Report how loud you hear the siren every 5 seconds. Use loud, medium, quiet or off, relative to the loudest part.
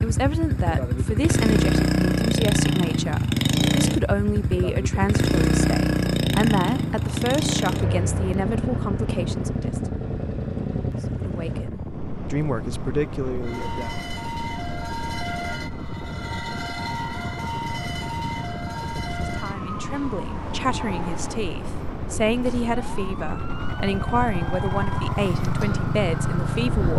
off, off, loud, loud, medium, off.